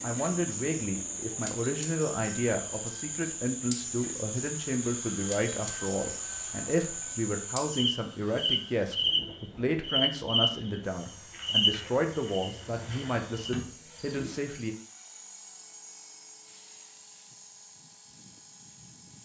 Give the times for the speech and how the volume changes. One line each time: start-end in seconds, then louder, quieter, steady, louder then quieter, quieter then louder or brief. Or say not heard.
0.0-14.8 steady.